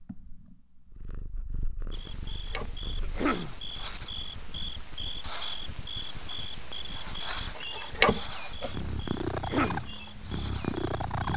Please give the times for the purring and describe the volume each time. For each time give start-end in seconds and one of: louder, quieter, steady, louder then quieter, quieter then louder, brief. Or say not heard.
0.0-5.0 louder then quieter
8.6-11.3 brief.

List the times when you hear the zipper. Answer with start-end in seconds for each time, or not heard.
2.0-3.2, 7.5-8.8.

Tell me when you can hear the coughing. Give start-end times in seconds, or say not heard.
3.0-3.5, 9.3-9.9.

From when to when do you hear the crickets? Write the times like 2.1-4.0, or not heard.
1.9-11.3.